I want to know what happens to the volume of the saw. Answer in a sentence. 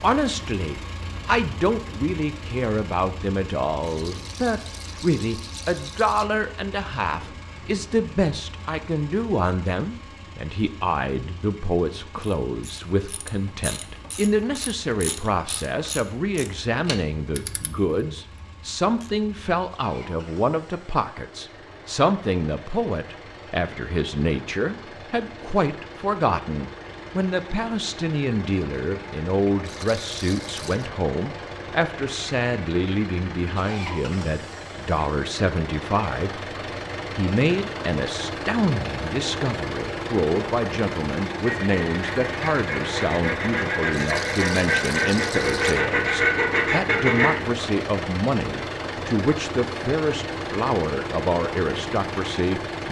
The loudness of the saw goes up.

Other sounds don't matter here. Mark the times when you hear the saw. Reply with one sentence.
You can hear the saw from 41.5 to 47.4 s.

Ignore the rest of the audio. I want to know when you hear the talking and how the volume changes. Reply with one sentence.
The talking can be heard from 0.0 to 36.4 s, at a steady volume; and from 37.1 to 52.8 s, at a steady volume.